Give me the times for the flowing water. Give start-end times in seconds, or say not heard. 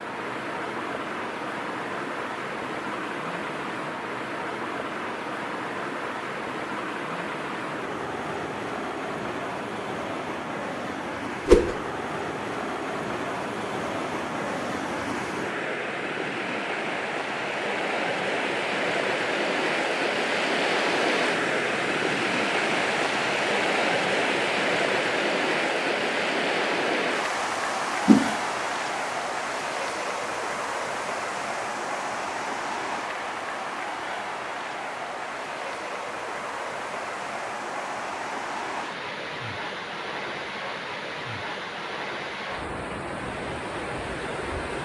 0.0-44.7.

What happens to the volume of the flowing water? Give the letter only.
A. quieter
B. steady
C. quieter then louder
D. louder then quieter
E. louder
D.